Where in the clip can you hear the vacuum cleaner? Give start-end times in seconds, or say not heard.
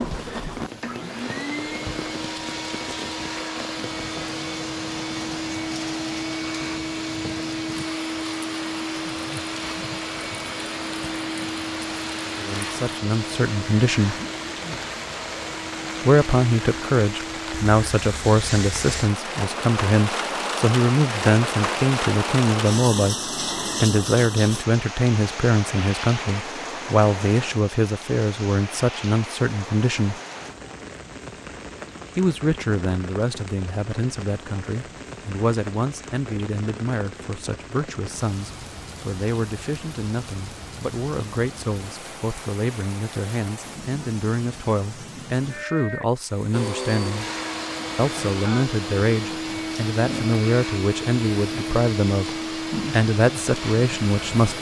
0.0-17.6, 46.5-54.5.